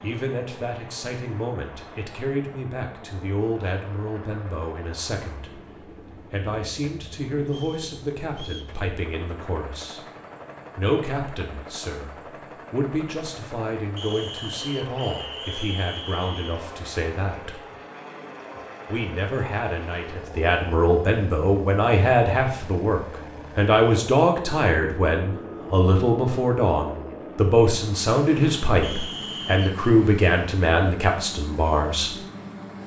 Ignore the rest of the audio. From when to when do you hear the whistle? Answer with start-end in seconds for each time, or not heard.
7.5-8.8, 13.9-16.6, 28.8-29.9.